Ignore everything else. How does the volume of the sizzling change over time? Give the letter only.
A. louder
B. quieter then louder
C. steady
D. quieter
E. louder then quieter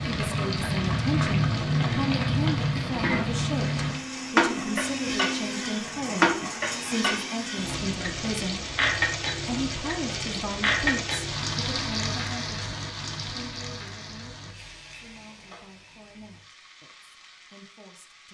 D.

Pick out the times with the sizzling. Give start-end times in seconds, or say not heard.
0.0-18.2.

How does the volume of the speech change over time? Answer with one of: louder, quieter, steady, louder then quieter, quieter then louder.
quieter.